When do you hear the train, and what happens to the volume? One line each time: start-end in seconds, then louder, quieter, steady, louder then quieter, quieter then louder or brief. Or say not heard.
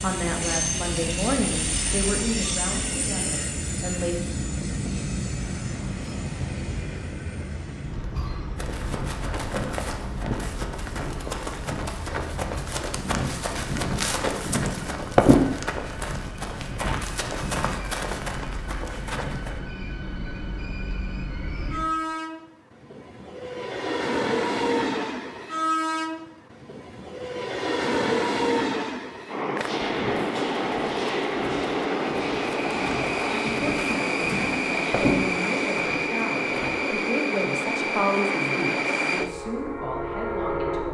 0.0-40.8 quieter then louder.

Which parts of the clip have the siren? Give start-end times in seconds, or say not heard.
not heard.